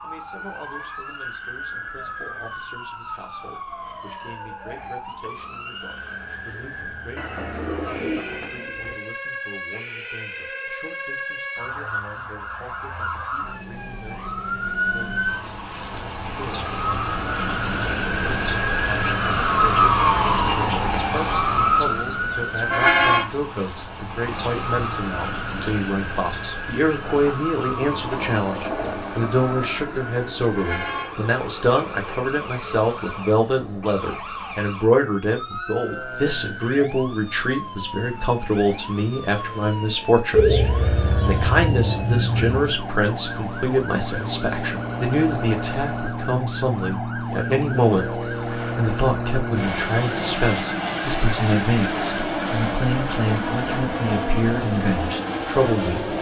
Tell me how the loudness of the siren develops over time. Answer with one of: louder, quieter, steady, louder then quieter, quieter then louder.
louder then quieter.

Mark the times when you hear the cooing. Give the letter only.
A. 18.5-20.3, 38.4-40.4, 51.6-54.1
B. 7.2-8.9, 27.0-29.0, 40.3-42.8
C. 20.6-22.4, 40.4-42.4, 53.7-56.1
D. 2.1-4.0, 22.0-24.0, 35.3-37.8
B.